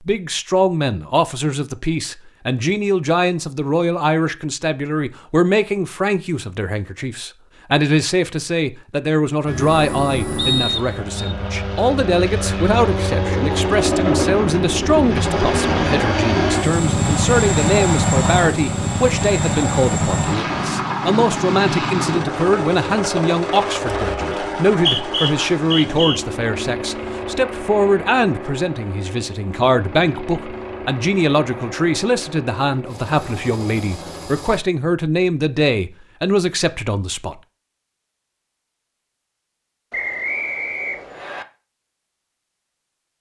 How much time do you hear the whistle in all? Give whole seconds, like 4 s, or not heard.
4 s.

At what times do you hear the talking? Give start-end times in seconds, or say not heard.
0.0-37.4.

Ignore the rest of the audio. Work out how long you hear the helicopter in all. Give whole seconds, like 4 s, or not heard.
25 s.